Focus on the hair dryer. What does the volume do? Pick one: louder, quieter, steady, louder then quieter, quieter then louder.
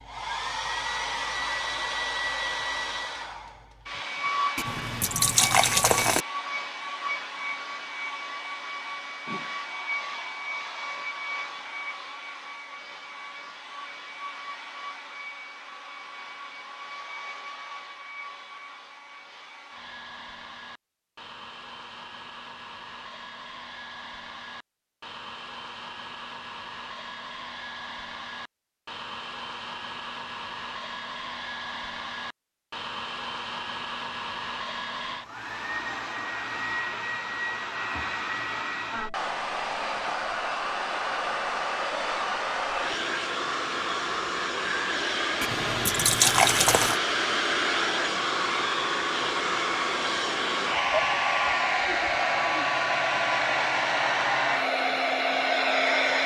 quieter then louder.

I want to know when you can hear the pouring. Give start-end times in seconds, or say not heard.
4.5-6.2, 45.4-47.0.